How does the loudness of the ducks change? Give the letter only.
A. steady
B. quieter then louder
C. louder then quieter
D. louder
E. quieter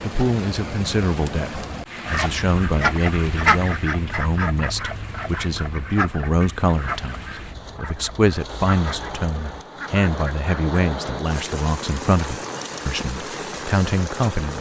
E.